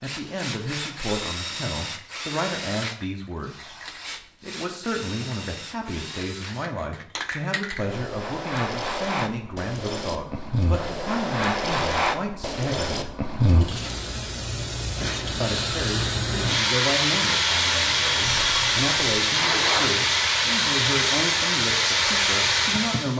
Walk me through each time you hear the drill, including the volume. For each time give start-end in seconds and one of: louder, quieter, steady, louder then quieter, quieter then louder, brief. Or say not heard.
0.0-6.5 quieter
18.2-20.0 brief.